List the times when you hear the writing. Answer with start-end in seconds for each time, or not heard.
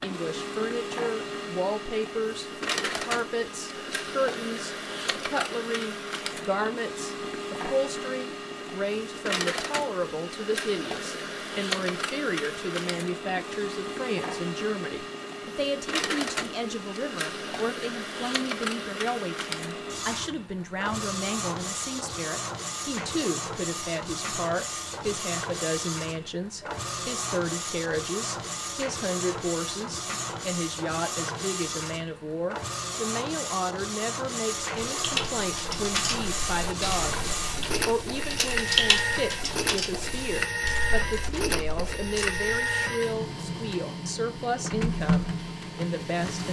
not heard.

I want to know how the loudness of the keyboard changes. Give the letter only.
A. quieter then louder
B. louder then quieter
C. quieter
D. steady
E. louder
B.